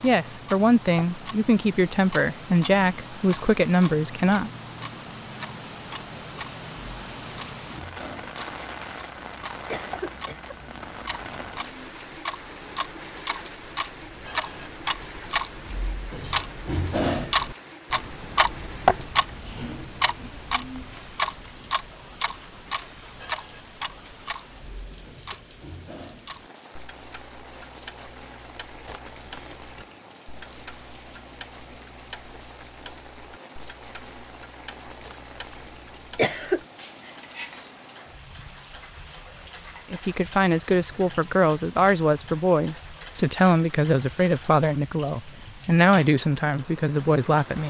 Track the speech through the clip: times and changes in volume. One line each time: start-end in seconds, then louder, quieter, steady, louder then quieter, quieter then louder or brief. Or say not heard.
0.0-4.5 steady
39.9-47.6 steady.